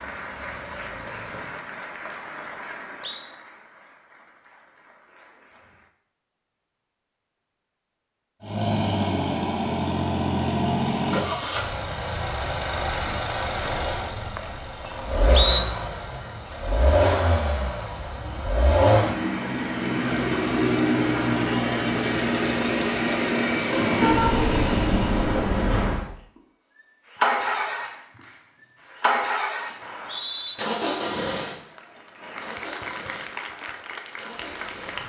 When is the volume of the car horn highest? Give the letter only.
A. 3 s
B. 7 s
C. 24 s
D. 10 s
C.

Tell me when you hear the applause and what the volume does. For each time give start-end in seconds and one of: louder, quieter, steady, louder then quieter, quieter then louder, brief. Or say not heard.
0.0-5.9 quieter
27.0-35.0 louder.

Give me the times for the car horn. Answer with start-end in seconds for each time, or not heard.
23.7-25.4.